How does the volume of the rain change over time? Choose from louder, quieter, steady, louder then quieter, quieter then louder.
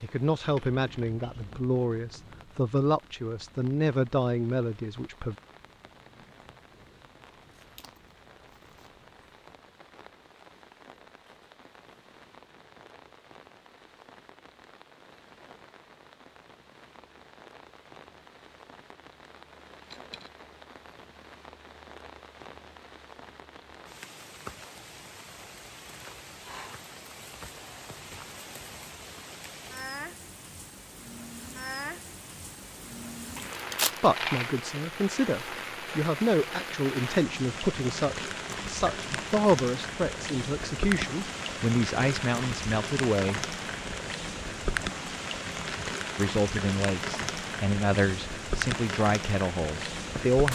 louder.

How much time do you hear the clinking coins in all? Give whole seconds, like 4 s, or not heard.
3 s.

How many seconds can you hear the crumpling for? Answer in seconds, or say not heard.
2 s.